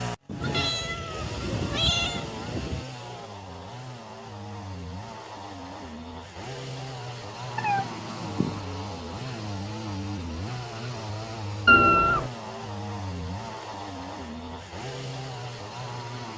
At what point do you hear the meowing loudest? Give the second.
12 s.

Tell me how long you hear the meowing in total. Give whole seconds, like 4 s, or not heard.
4 s.